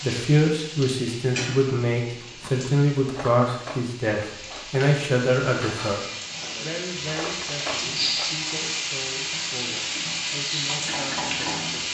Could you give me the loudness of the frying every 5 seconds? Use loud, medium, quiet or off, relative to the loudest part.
medium, loud, loud.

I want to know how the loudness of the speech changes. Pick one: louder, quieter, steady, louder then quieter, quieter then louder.
quieter.